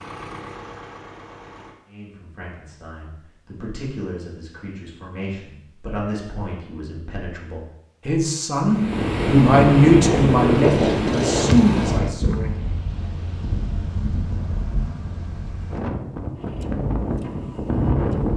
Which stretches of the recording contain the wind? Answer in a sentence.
The wind can be heard from 8.7 to 18.3 s.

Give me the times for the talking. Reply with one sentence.
The talking can be heard from 1.9 to 12.5 s.